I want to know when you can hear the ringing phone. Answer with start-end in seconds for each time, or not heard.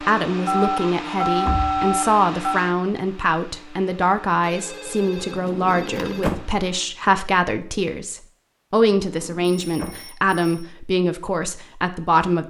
0.5-2.6, 4.4-6.2, 9.4-10.7.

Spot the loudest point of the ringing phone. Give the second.
1 s.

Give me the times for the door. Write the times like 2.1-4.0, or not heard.
1.4-1.9, 5.3-6.5, 9.0-10.0.